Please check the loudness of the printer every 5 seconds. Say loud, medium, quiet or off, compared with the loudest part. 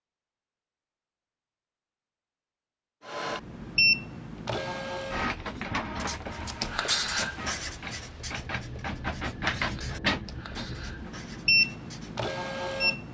loud, medium, loud.